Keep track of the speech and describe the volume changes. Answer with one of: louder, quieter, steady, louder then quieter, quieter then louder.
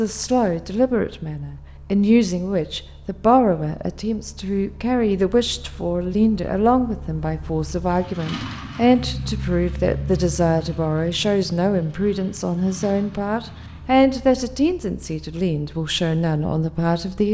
steady.